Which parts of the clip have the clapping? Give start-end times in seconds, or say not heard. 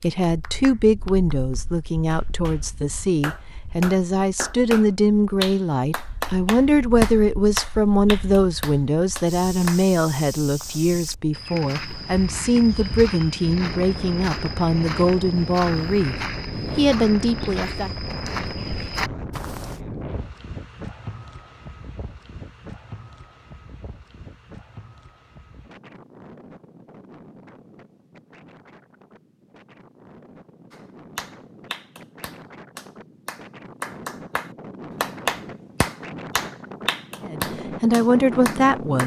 0.0-9.8, 30.7-39.0.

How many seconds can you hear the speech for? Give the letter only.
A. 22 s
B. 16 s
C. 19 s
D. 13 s
C.